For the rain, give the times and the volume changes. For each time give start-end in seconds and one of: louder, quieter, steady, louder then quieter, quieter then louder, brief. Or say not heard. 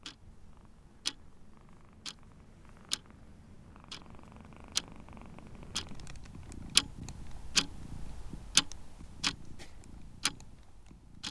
not heard.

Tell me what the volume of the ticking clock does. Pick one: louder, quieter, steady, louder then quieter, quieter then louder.
louder then quieter.